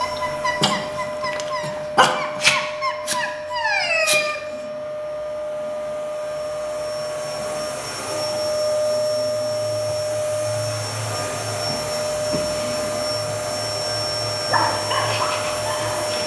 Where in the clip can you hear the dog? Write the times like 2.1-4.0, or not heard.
0.0-4.4, 14.3-16.2.